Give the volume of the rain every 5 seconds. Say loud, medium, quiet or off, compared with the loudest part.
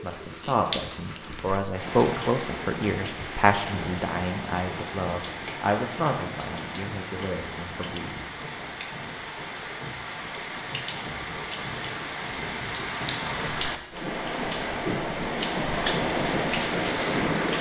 medium, medium, medium, loud.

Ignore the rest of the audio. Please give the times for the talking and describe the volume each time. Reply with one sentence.
You can hear the talking from 0.0 to 8.2 s, getting quieter.